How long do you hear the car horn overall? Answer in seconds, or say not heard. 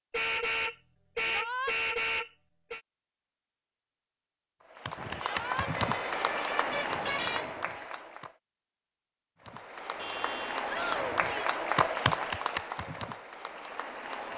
6 s.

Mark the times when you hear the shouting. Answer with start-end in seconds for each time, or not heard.
1.2-1.8, 5.2-5.7, 10.7-11.6.